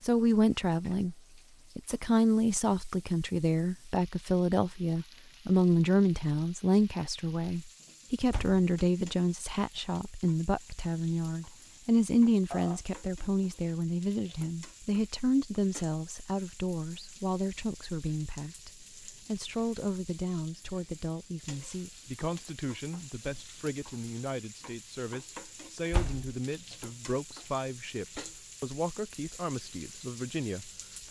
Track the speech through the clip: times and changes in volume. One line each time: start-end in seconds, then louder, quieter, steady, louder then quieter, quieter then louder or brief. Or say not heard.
0.0-1.1 brief
1.8-31.0 quieter.